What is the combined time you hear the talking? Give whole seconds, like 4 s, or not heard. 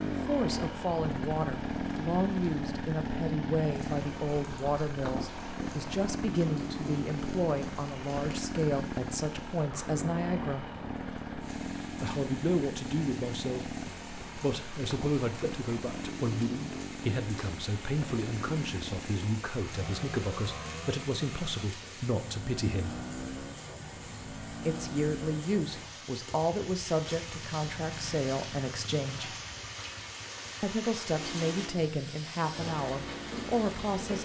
30 s.